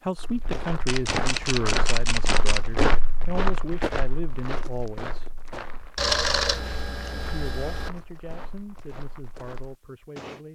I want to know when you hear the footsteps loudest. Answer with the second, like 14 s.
3 s.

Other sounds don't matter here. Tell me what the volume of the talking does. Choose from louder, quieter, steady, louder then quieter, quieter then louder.
quieter.